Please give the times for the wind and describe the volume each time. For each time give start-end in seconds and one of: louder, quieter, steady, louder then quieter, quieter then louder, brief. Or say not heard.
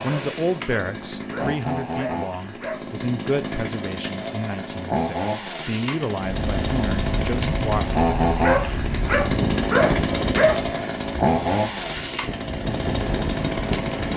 6.2-14.1 quieter then louder.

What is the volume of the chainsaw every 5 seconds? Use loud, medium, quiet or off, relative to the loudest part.
medium, loud, loud.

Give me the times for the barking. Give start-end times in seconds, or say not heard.
0.1-2.8, 8.4-10.6.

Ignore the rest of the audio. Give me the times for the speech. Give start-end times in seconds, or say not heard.
0.0-7.8.